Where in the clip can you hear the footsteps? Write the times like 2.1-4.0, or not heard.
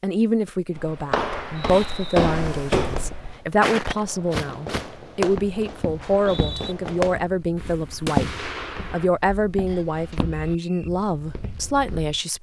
0.8-12.2.